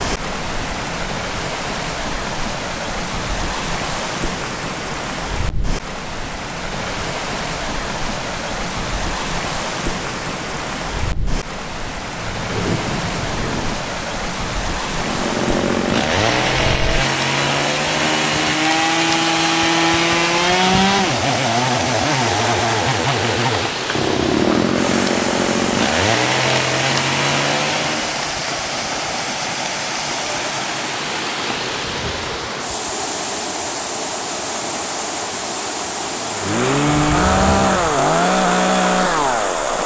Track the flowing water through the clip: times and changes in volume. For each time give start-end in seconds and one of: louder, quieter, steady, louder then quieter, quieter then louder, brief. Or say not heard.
0.0-39.8 steady.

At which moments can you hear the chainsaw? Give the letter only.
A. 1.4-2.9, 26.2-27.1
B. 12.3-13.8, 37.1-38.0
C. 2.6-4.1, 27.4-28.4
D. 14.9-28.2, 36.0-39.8
D.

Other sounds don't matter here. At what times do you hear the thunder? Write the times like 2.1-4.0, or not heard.
12.3-13.8, 37.1-38.0.